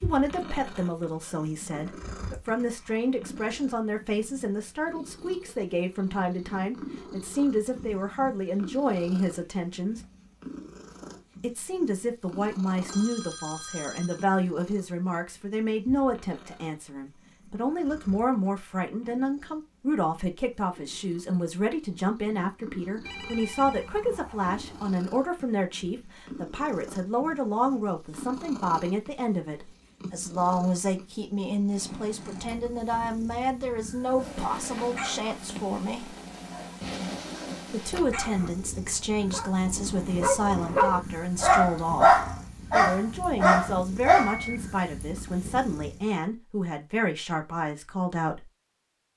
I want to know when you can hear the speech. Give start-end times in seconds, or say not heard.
0.0-10.0, 11.4-36.1, 37.7-48.5.